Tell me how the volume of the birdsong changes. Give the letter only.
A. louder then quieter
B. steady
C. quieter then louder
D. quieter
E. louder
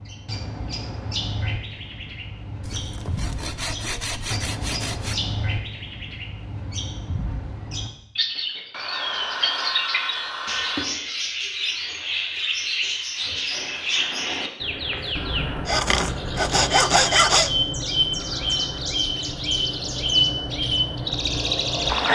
E.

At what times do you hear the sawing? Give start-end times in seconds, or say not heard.
2.6-5.2, 8.7-10.9, 15.7-17.5.